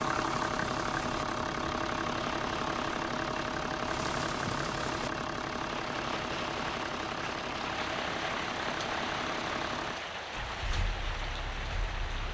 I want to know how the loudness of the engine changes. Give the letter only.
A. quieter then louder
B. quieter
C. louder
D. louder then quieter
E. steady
B.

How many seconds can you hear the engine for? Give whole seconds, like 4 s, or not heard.
12 s.